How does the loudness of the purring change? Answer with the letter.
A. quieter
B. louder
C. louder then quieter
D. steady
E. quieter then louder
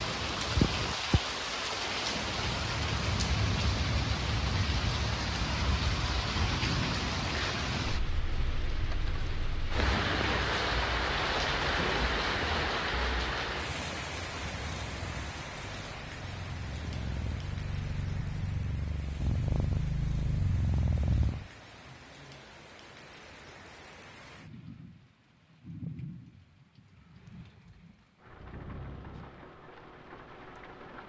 B.